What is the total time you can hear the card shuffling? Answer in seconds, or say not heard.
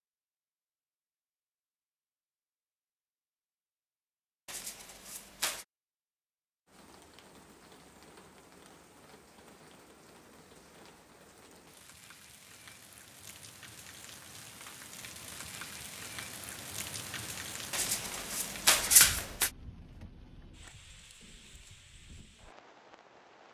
3 s.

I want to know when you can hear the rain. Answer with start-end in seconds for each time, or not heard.
6.7-23.4.